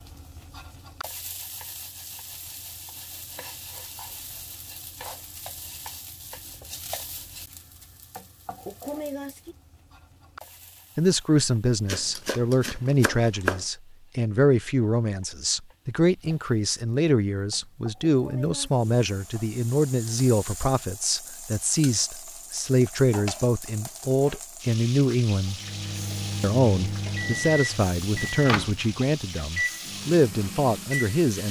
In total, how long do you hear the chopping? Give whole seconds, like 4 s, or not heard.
2 s.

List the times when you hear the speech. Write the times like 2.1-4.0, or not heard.
10.9-25.6, 26.4-31.4.